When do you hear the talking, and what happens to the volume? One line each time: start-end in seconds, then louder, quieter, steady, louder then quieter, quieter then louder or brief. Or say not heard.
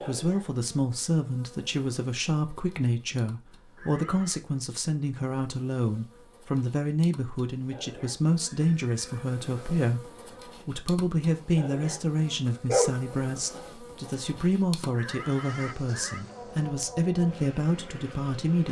0.0-18.6 steady.